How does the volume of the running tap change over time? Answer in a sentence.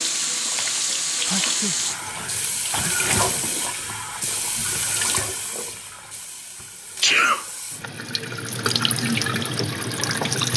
The volume of the running tap goes down, then up.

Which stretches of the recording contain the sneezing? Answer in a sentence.
The sneezing can be heard from 1.1 to 3.1 s and from 7.0 to 7.9 s.